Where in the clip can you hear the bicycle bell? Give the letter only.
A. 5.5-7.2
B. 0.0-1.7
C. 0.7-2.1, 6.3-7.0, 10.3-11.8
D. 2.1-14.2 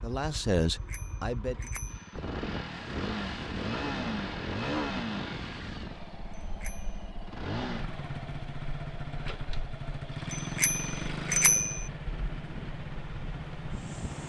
C.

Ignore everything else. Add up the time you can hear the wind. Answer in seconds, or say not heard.
12 s.